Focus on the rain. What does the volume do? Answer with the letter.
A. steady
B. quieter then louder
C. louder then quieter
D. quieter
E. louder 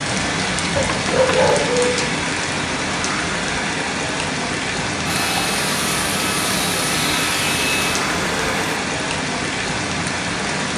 A.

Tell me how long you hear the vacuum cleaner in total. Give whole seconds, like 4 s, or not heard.
4 s.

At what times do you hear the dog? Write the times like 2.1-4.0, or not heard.
0.8-2.1.